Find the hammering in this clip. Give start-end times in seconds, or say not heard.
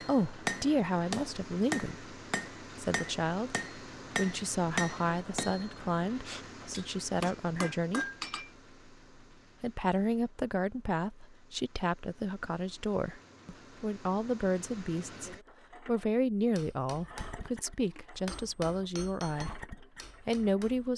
0.0-8.5, 16.6-20.9.